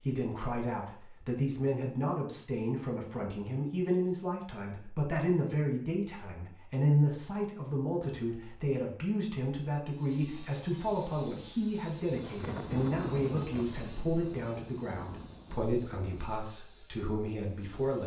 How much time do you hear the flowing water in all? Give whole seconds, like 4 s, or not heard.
not heard.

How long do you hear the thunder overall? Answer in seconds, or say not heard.
4 s.